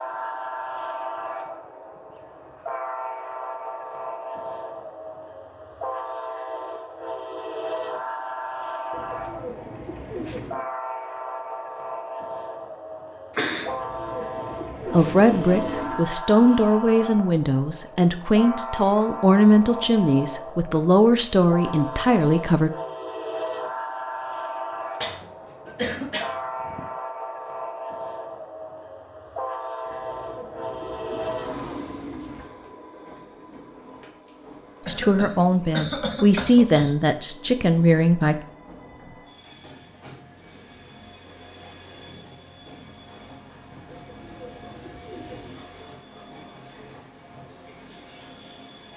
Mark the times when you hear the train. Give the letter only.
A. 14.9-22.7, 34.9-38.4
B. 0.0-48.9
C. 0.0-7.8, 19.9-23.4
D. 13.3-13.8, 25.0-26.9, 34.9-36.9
B.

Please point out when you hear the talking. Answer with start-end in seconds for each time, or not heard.
14.9-22.7, 34.9-38.4.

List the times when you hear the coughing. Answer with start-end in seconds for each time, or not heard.
13.3-13.8, 25.0-26.9, 34.9-36.9.